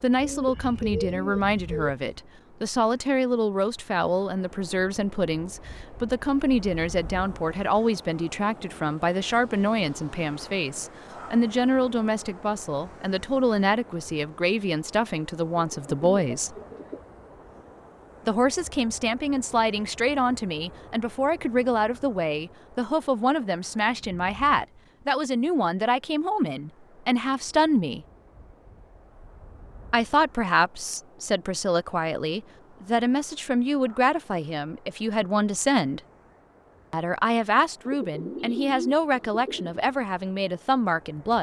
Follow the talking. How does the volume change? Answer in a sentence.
The loudness of the talking stays about the same.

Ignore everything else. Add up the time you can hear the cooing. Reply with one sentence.
You can hear the cooing for 5 seconds altogether.